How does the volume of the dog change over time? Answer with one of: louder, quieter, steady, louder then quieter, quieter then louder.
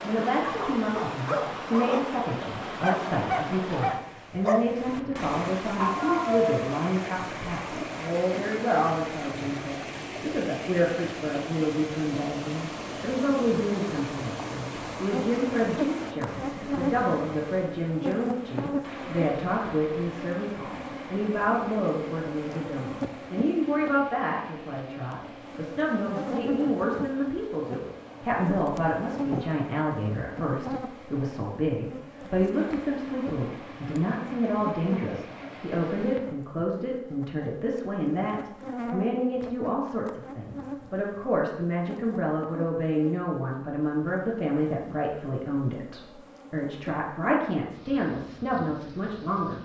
steady.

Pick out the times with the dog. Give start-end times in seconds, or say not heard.
0.4-6.7.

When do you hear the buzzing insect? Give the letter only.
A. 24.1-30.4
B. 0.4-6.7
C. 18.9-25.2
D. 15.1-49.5
D.